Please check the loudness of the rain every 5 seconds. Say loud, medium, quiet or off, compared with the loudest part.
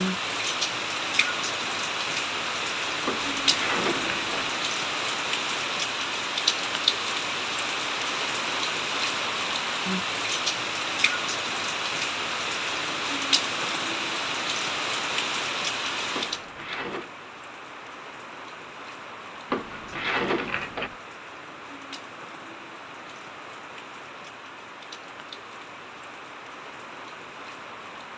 loud, loud, loud, medium, quiet, quiet.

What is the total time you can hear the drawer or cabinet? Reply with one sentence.
The drawer or cabinet can be heard for 4 seconds in total.